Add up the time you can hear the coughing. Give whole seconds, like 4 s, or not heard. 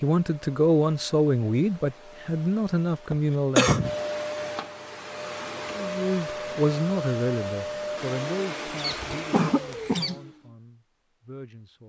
2 s.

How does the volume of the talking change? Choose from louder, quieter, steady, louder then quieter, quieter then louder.
quieter.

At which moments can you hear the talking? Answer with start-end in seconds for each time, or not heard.
0.0-3.8, 5.7-11.8.